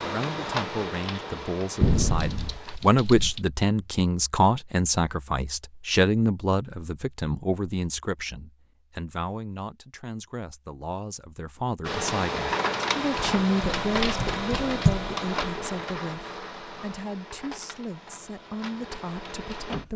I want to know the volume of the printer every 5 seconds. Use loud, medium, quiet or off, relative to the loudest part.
medium, off, loud, medium.